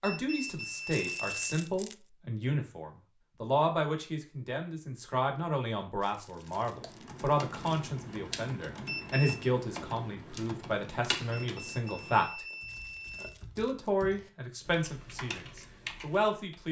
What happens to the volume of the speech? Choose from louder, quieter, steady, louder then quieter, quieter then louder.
steady.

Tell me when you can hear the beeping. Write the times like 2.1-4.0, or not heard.
0.0-1.6, 8.8-9.5, 11.3-13.3.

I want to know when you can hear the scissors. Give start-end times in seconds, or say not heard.
not heard.